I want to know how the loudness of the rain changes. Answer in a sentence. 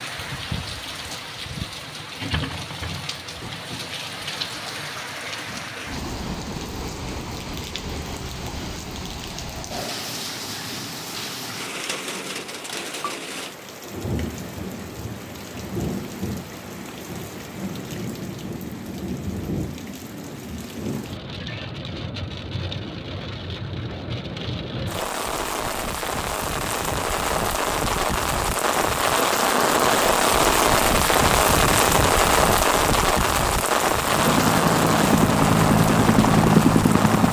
The volume of the rain goes up.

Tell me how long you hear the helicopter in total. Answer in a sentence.
The helicopter can be heard for 3 seconds in total.